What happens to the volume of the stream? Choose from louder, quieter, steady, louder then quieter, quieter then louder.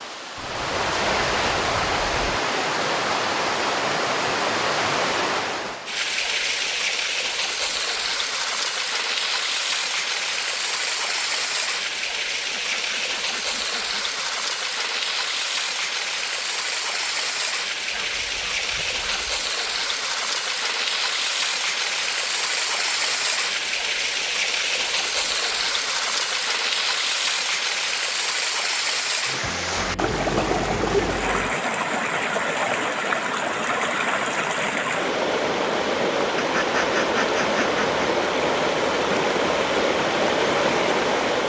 steady.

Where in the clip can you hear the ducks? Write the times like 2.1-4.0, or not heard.
0.3-2.4, 12.5-14.2, 17.9-19.4, 29.8-31.6, 36.4-37.9.